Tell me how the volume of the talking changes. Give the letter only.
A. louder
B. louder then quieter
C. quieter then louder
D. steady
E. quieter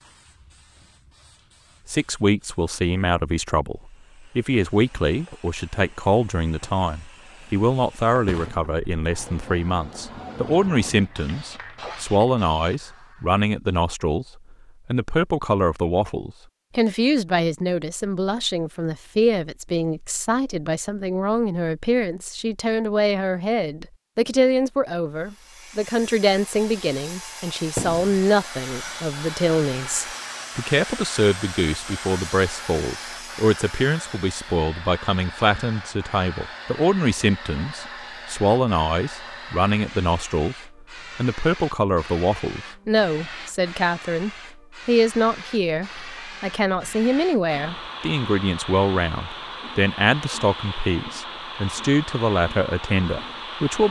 D.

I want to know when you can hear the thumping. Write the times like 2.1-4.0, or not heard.
8.2-8.7, 27.8-28.2.